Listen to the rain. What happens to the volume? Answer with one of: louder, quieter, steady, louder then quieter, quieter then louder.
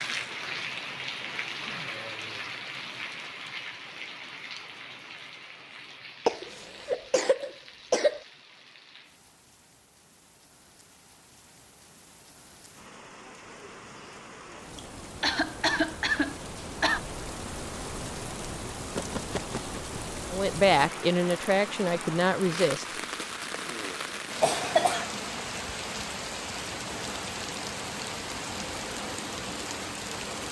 quieter then louder.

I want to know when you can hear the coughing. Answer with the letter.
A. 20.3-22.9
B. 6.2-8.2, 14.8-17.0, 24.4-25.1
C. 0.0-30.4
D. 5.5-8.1
B.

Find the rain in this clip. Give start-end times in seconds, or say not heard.
0.0-30.4.